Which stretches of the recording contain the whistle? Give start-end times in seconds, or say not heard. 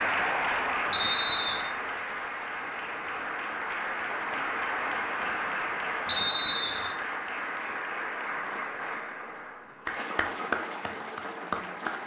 0.9-1.6, 6.0-7.0.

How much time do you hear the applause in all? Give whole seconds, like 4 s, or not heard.
12 s.